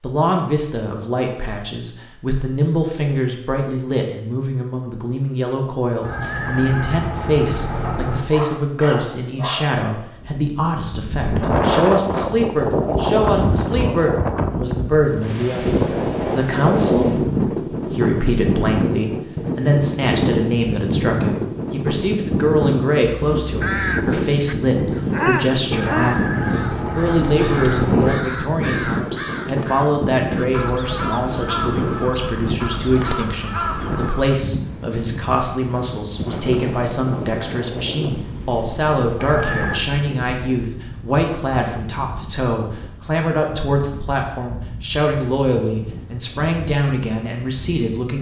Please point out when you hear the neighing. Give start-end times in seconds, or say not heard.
6.0-8.3, 25.7-28.2, 39.1-39.8.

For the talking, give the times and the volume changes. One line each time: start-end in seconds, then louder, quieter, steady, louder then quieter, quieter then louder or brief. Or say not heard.
0.0-48.1 steady.